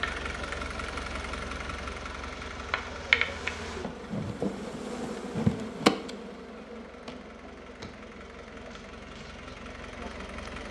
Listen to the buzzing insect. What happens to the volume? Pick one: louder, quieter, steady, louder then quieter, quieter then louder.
louder then quieter.